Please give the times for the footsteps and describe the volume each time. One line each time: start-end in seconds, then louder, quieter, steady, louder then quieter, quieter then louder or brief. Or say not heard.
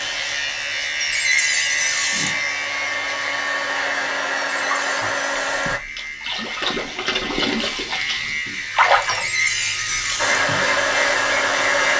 not heard.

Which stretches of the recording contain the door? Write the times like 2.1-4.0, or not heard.
0.9-2.4, 4.5-5.6, 9.1-10.4.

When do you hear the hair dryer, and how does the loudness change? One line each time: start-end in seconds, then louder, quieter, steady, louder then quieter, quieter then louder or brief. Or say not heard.
0.0-5.8 louder
10.2-11.9 brief.